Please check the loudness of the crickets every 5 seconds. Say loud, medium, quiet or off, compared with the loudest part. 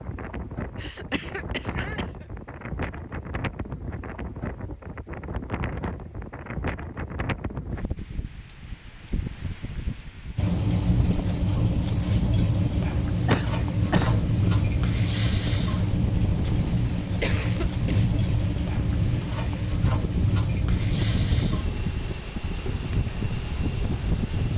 off, off, loud, loud, loud.